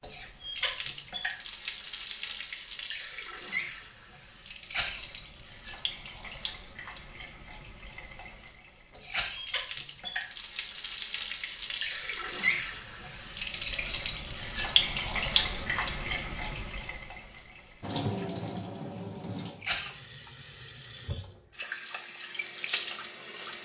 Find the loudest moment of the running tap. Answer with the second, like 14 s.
15 s.